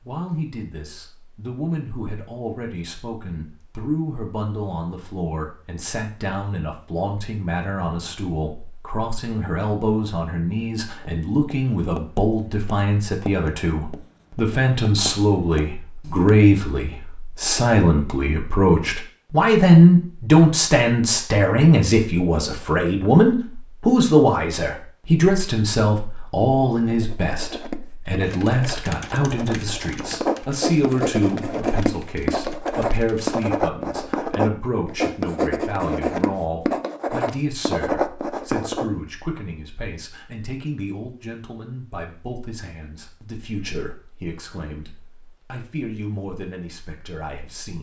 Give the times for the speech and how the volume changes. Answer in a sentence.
The speech can be heard from 0.0 to 47.7 s, getting louder then quieter.